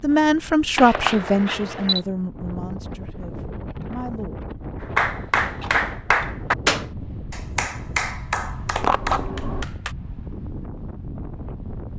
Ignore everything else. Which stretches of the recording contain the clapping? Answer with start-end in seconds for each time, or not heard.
5.0-9.9.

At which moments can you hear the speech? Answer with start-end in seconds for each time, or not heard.
0.0-4.5.